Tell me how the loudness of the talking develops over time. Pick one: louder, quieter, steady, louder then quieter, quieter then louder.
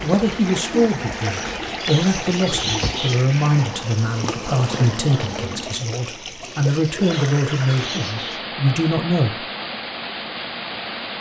steady.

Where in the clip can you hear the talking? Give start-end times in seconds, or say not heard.
0.0-9.4.